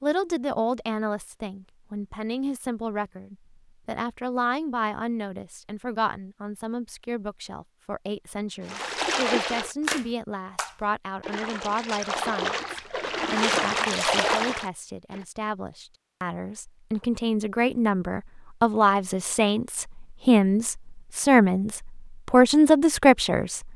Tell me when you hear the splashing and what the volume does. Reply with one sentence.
The splashing can be heard from 8.7 to 15.2 s, getting quieter then louder.